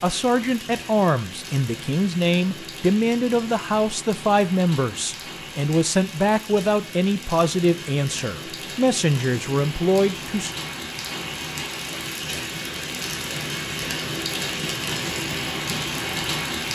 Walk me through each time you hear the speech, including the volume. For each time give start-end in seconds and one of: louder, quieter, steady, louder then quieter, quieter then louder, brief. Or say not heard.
0.0-10.5 steady.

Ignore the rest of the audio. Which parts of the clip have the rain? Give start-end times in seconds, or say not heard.
0.0-16.7.